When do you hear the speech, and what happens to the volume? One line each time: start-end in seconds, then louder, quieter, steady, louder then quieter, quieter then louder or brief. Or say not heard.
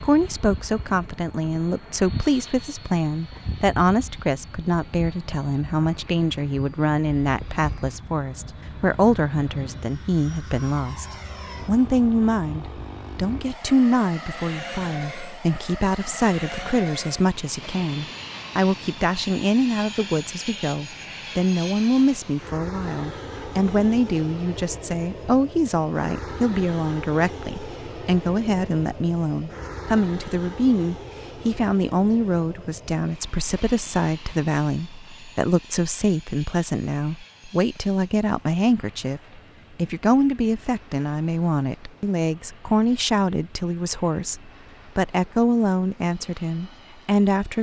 0.0-47.5 steady.